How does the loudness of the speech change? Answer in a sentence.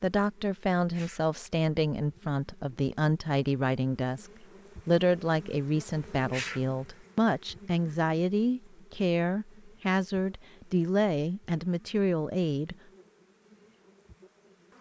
The loudness of the speech stays about the same.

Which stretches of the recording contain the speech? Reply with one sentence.
The speech can be heard from 0.0 to 12.8 s.